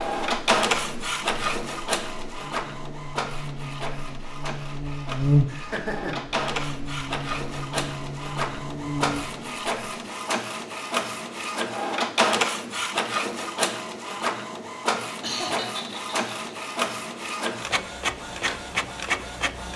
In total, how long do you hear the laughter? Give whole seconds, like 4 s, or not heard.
2 s.